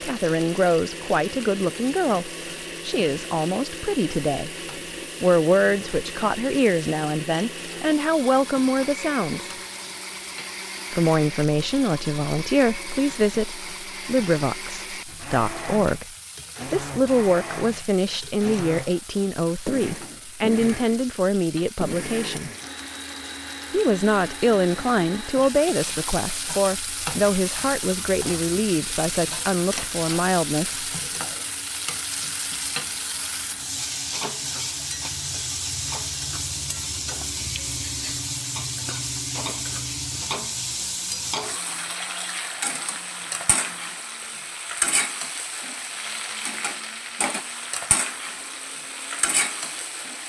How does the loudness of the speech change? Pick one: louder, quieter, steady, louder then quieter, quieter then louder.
steady.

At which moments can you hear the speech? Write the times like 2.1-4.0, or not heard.
0.0-4.5, 5.2-9.5, 10.9-16.1, 16.7-22.5, 23.7-30.9.